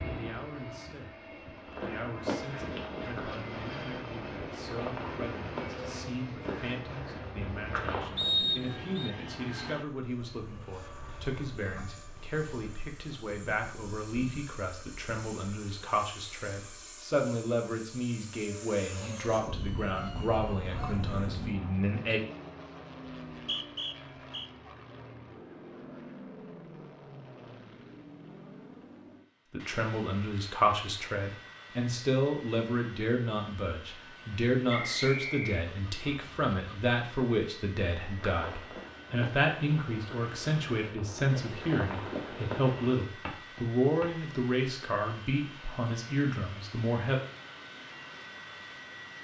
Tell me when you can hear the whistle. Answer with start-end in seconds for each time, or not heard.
8.2-9.1, 23.3-24.5, 34.6-35.6.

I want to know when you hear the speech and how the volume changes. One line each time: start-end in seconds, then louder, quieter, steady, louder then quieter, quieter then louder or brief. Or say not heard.
0.0-22.2 louder
29.5-47.1 steady.